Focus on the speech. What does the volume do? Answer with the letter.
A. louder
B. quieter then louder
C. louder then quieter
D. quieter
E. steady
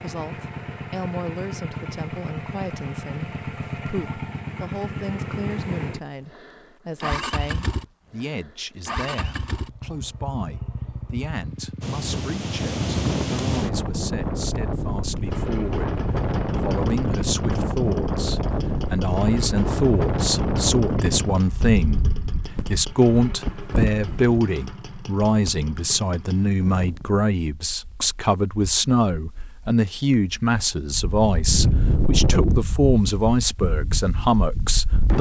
A.